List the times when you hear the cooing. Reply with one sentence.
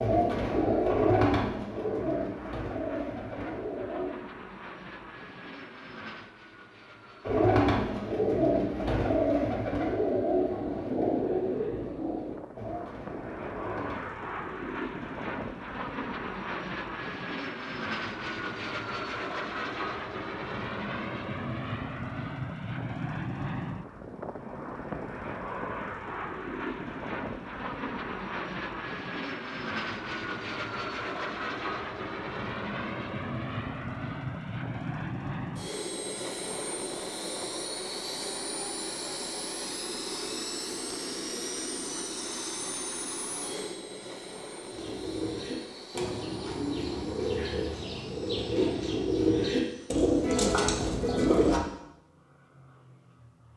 The cooing can be heard from 0.0 to 4.1 s, from 7.2 to 14.2 s and from 44.7 to 51.6 s.